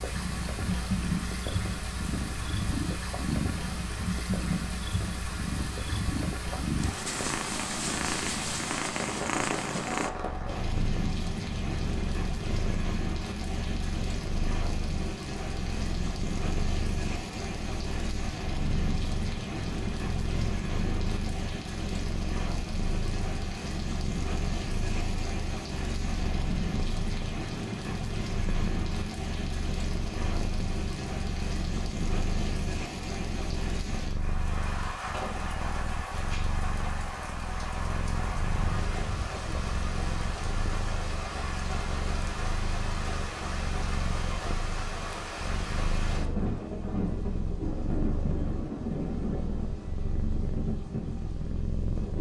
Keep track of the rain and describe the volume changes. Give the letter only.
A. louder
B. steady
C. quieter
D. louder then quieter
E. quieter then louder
B.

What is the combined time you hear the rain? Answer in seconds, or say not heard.
52 s.